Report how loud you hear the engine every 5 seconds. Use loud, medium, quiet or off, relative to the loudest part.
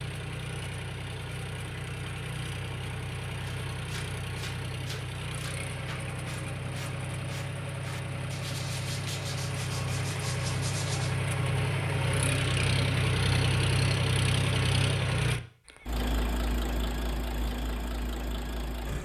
medium, medium, loud, medium.